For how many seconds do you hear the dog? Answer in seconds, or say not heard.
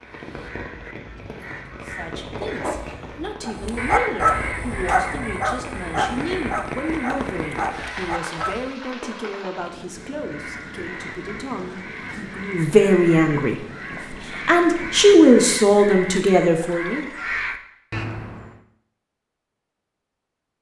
5 s.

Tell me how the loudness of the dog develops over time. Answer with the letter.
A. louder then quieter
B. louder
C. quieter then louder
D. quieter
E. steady
D.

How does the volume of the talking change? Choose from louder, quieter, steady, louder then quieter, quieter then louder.
louder.